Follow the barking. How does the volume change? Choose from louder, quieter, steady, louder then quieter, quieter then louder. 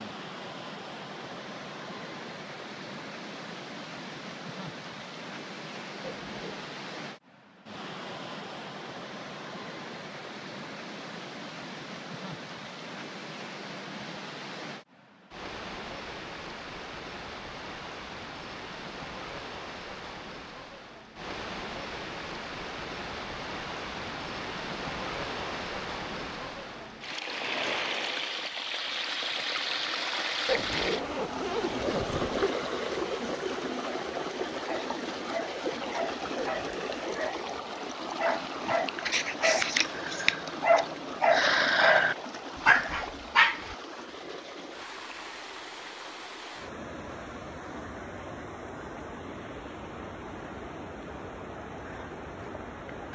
louder.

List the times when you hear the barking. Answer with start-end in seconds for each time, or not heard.
34.6-43.8.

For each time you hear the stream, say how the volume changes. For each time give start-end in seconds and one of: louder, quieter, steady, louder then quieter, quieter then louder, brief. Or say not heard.
0.0-53.1 louder then quieter.